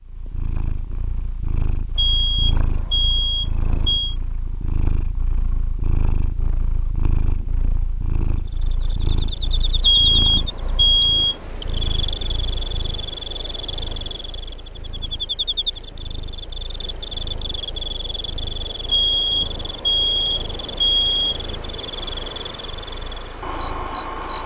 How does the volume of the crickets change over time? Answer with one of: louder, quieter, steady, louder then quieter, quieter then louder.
steady.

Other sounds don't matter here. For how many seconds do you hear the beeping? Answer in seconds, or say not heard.
6 s.